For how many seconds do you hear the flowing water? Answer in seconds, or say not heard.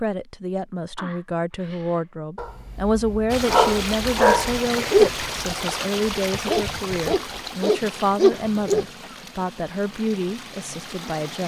8 s.